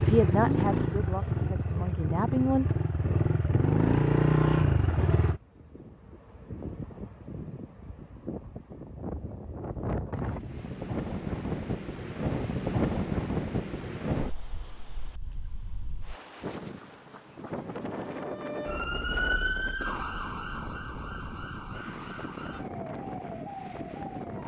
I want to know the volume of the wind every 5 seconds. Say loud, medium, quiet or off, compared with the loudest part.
medium, medium, loud, medium, medium.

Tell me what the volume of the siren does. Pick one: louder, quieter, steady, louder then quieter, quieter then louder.
quieter.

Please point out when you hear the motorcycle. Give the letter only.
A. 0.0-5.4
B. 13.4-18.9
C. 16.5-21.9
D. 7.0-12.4
A.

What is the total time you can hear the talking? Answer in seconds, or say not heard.
3 s.